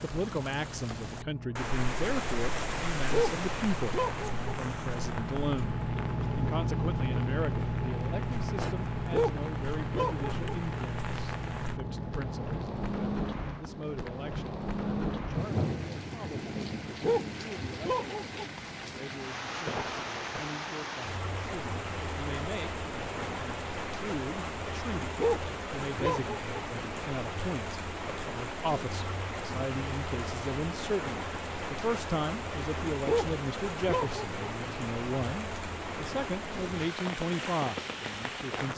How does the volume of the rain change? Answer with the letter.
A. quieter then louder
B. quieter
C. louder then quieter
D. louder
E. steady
E.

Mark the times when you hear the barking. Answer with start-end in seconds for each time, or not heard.
3.1-4.5, 9.1-10.4, 17.0-18.5, 25.1-26.6, 33.0-34.5.